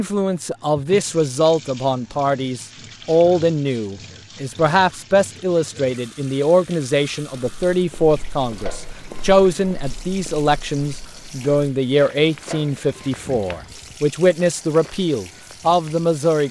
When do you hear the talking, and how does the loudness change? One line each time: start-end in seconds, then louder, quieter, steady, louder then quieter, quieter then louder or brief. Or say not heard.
0.0-16.4 steady.